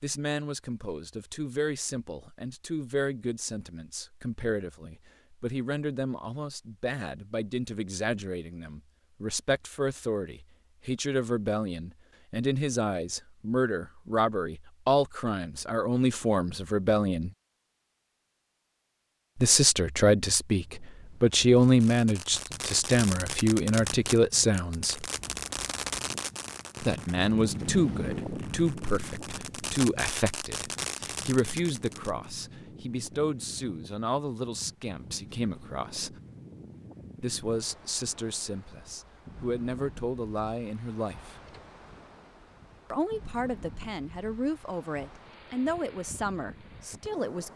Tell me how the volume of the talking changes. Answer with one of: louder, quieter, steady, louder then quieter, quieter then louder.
louder then quieter.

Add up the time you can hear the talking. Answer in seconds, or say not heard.
41 s.